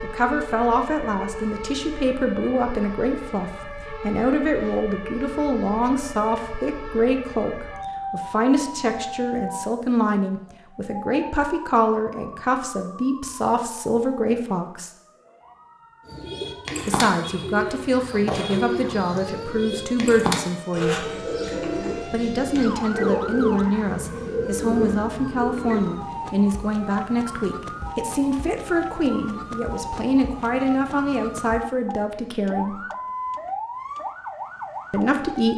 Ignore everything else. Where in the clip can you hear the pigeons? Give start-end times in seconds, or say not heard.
16.1-25.9.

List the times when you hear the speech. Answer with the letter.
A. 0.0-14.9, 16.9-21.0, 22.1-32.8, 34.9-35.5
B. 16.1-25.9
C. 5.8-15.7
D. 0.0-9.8
A.